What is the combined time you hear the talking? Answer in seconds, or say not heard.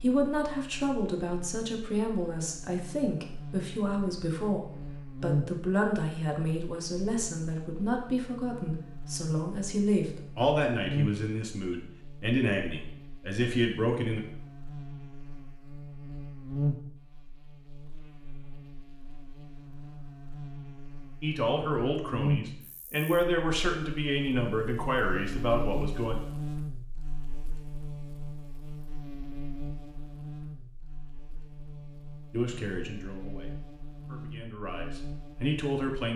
23 s.